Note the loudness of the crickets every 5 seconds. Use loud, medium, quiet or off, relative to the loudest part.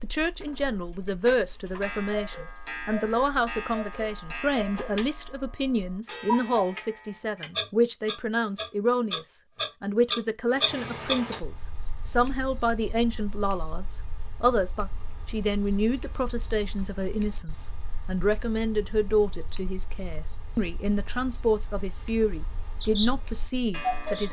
off, off, loud, loud, loud.